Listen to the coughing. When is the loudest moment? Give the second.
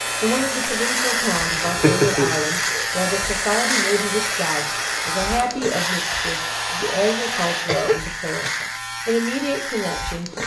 2 s.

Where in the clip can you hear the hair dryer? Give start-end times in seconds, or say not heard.
0.0-7.7.